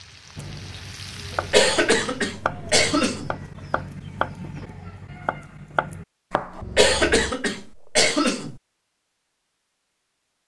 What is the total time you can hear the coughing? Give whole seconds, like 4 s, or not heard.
4 s.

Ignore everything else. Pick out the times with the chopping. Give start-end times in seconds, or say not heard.
0.3-7.3.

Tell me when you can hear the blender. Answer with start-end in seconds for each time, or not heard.
not heard.